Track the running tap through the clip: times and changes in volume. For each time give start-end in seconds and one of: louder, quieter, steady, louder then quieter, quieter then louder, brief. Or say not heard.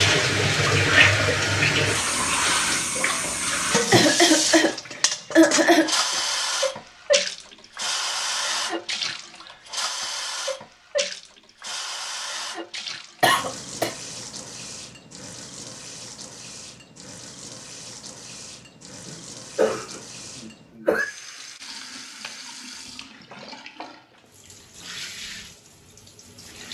0.0-26.6 quieter.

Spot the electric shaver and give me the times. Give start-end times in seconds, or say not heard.
not heard.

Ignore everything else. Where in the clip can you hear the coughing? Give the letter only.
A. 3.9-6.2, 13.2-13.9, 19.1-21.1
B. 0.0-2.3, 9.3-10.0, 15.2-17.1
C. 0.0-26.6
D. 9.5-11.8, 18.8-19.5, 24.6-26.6
A.